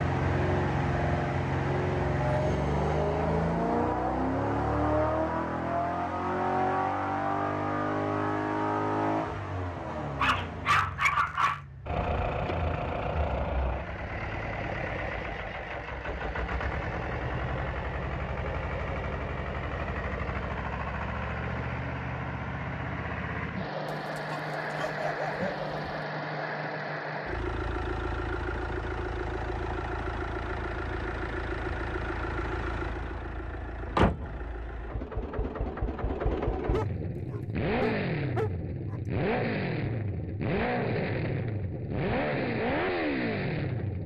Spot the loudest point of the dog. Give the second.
11 s.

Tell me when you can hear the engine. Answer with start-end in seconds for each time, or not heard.
0.0-44.0.